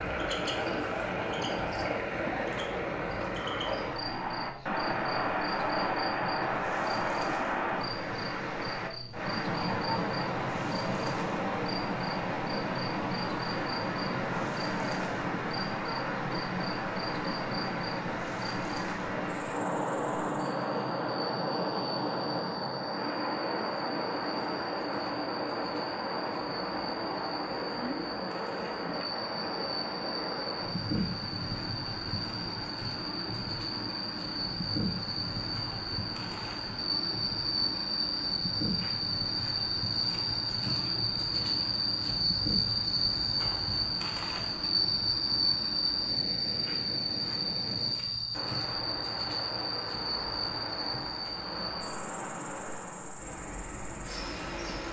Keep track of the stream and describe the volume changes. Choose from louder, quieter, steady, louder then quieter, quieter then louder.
quieter.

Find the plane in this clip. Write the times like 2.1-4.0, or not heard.
not heard.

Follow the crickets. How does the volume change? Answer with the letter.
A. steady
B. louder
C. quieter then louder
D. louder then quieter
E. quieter
B.